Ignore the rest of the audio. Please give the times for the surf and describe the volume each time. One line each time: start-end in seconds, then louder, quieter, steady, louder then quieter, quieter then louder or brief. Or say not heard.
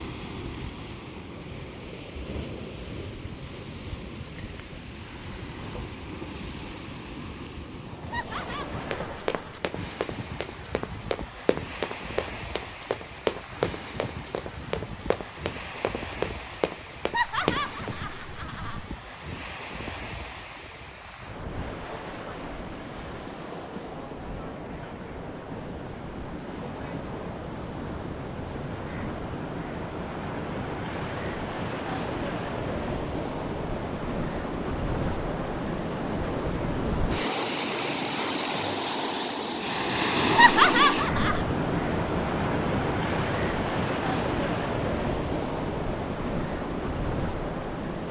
0.0-48.0 louder.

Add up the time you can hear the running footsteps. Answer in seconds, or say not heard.
9 s.